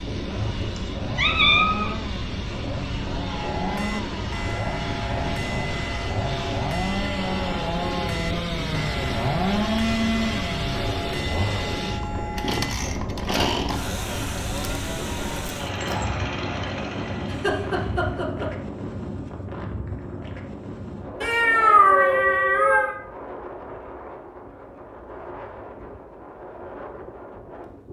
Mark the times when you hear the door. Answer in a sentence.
The door can't be heard in this clip.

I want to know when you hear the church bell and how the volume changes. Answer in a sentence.
The church bell can be heard from 3.3 to 12.8 s, at a steady volume.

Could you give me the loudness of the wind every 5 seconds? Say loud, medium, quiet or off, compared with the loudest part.
loud, loud, loud, loud, medium, medium.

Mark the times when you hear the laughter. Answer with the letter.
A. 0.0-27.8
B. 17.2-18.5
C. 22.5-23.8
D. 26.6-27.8
B.